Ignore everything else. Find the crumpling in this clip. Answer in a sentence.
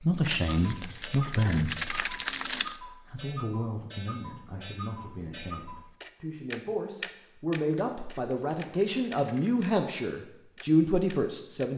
You can hear the crumpling from 0.2 to 2.8 s and from 7.7 to 9.6 s.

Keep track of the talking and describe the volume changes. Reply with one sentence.
The loudness of the talking goes down, then up.